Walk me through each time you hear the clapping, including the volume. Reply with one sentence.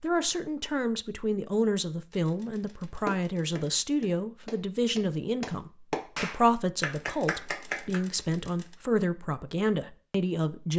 You can hear the clapping from 3.0 to 8.0 s, getting louder.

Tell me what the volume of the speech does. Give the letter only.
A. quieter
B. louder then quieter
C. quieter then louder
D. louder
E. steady
E.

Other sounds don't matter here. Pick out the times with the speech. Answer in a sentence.
You can hear the speech from 0.0 to 10.7 s.